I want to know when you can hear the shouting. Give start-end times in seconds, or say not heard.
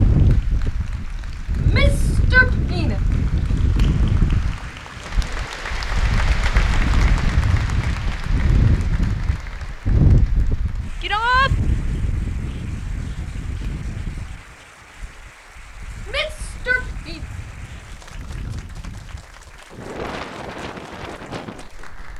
1.6-3.0, 11.0-11.6, 16.1-17.2.